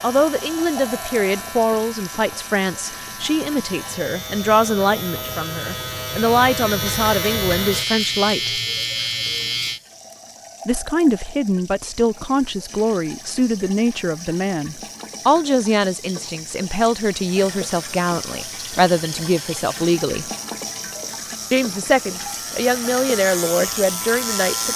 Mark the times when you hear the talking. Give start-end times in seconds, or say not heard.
0.0-8.6, 10.7-20.3, 21.5-24.7.